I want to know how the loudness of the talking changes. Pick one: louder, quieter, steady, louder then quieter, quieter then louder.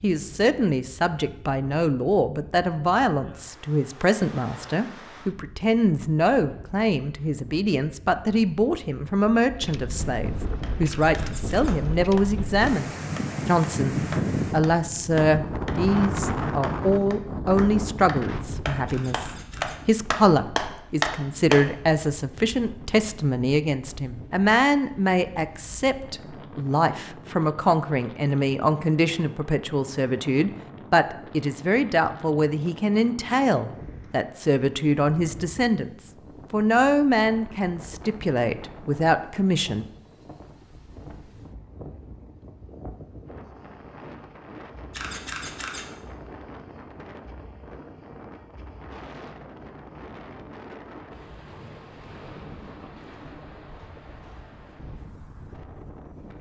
steady.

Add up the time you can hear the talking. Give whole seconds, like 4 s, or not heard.
40 s.